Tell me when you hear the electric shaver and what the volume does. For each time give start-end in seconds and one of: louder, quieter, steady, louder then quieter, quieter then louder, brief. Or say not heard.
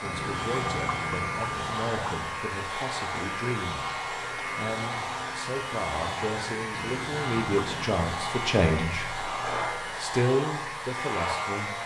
0.0-11.8 steady.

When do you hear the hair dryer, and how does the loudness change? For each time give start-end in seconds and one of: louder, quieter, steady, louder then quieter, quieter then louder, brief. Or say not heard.
0.0-11.8 steady.